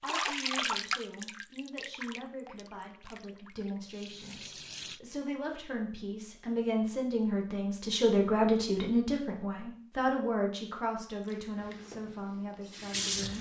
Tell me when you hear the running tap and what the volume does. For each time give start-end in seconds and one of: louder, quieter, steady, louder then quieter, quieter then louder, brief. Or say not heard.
0.0-5.0 quieter then louder
11.2-13.3 brief.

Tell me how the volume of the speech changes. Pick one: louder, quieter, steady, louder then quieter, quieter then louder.
louder then quieter.